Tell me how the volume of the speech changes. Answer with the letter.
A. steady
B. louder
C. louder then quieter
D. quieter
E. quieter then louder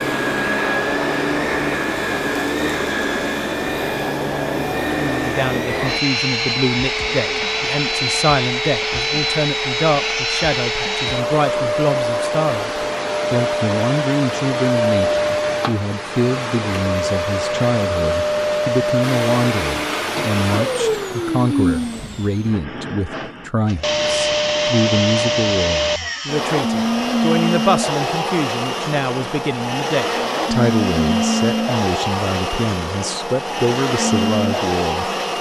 A.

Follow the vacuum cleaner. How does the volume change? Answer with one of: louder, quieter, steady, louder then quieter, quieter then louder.
steady.